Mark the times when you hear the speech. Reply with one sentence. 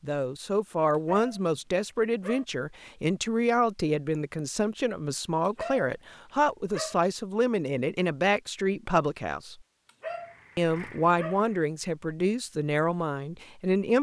The speech can be heard from 0.0 to 9.6 s and from 10.6 to 13.9 s.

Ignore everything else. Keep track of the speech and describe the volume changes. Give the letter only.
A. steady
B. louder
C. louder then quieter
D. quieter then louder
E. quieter
A.